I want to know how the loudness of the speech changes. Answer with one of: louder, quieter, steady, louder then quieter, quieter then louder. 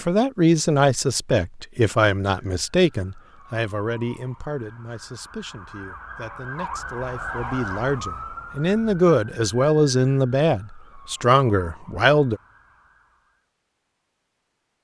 quieter then louder.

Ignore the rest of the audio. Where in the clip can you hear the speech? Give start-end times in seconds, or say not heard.
0.0-12.4.